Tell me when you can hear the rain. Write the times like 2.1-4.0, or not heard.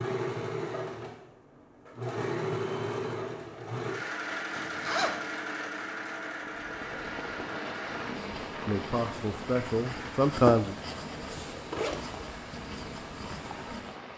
6.5-14.1.